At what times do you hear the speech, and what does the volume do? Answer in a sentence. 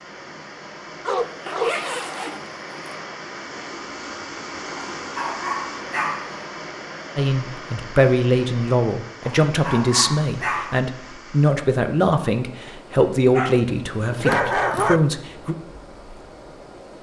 You can hear the speech from 7.2 to 15.6 s, at a steady volume.